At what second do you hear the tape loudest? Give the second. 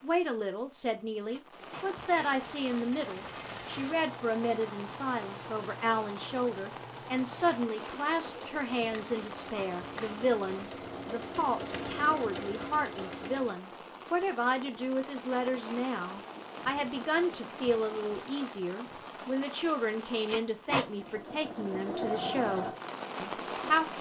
21 s.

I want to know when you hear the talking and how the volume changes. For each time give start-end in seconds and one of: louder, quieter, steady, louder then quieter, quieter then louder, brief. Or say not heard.
0.0-23.9 steady.